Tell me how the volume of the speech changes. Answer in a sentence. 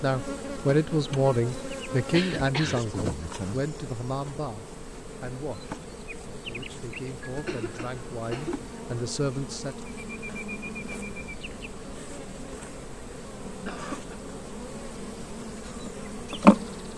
The volume of the speech goes down, then up.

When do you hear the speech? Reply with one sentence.
You can hear the speech from 0.0 to 9.8 s.